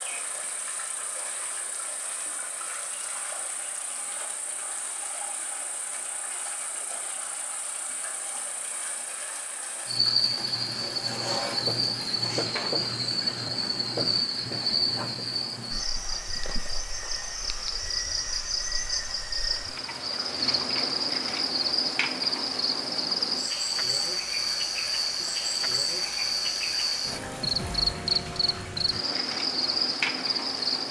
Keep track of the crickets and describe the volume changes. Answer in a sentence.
The volume of the crickets goes up.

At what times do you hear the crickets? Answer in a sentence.
The crickets can be heard from 0.0 to 30.8 s.